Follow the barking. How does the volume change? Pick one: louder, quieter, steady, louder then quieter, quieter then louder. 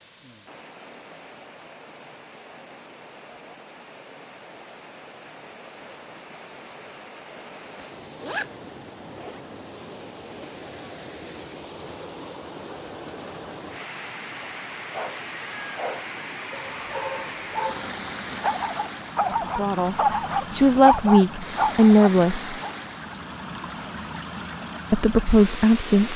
louder.